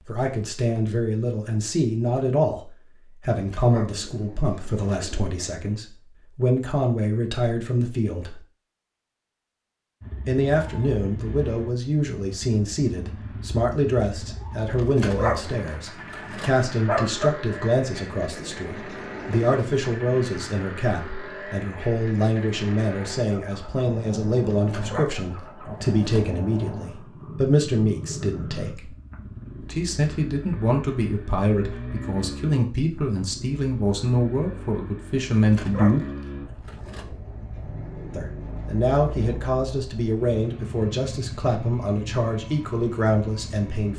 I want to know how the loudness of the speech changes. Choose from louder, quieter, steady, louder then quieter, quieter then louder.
steady.